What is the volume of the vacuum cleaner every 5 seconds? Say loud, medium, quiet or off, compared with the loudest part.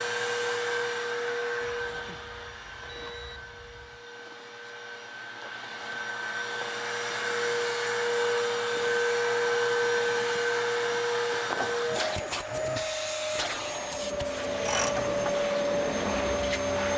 medium, loud, loud, loud.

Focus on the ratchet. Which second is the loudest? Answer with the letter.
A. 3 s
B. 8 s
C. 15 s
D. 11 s
C.